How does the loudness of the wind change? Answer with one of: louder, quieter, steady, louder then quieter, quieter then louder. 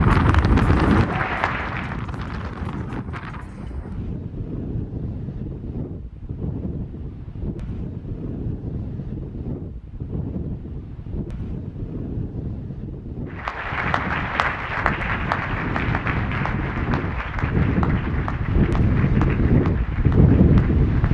quieter then louder.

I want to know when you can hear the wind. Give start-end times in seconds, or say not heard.
0.0-21.0.